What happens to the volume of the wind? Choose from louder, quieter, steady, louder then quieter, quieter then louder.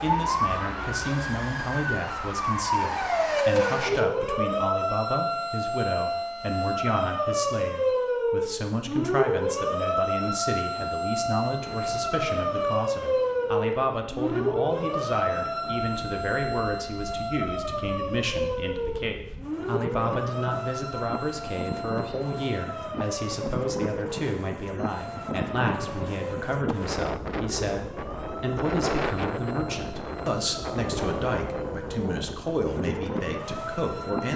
louder.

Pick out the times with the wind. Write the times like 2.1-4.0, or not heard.
10.8-34.3.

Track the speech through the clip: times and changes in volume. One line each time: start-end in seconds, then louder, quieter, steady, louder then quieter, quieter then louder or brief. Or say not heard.
0.0-34.3 steady.